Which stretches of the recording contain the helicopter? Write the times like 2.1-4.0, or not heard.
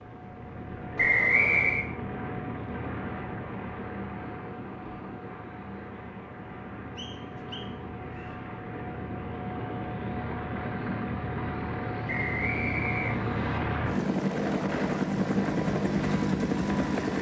0.0-17.1.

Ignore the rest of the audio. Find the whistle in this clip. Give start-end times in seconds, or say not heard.
0.9-1.9, 7.0-8.3, 12.1-13.6.